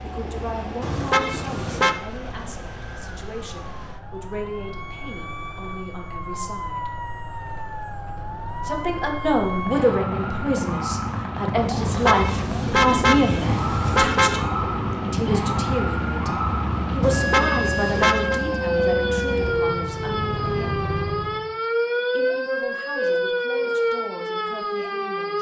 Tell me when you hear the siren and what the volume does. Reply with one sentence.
The siren can be heard from 0.0 to 25.3 s, getting louder.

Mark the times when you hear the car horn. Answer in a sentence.
The car horn can be heard from 0.8 to 2.0 s, from 11.8 to 14.4 s and from 17.0 to 18.4 s.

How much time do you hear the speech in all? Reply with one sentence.
You can hear the speech for 22 seconds altogether.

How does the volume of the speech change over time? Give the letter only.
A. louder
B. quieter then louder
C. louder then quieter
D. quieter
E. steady
C.